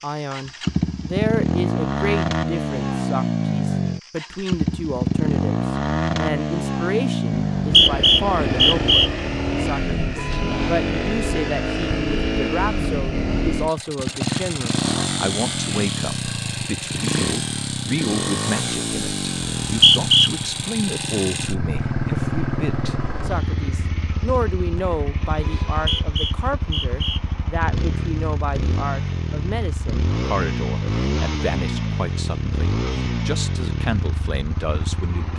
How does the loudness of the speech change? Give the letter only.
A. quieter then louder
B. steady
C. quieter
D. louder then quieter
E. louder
B.